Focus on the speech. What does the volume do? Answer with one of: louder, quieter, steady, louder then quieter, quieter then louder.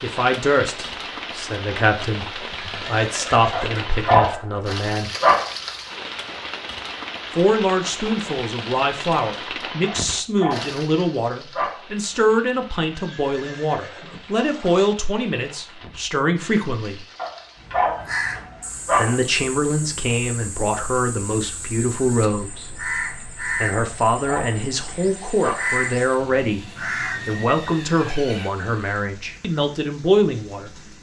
steady.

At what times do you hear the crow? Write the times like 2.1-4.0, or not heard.
18.0-27.4.